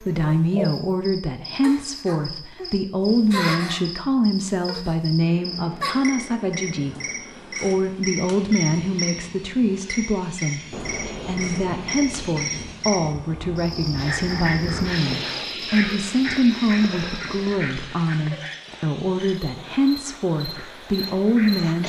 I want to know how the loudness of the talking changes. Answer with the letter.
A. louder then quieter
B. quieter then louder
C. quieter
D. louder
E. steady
E.